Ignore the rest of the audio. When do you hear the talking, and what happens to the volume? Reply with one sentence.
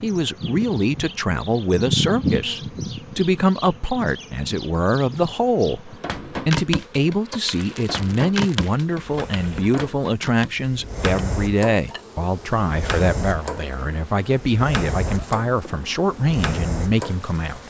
The talking can be heard from 0.0 to 17.6 s, at a steady volume.